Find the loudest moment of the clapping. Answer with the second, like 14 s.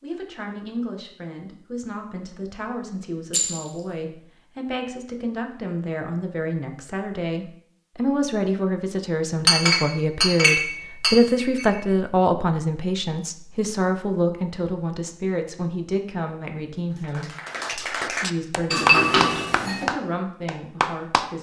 19 s.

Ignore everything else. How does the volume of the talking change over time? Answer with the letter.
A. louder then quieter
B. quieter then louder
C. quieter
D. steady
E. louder
A.